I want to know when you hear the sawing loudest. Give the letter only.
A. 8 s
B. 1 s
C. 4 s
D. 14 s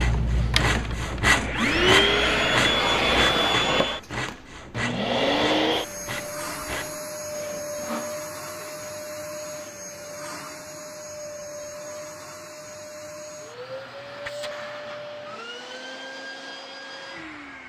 B.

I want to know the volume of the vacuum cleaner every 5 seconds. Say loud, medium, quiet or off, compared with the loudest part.
loud, medium, quiet, quiet.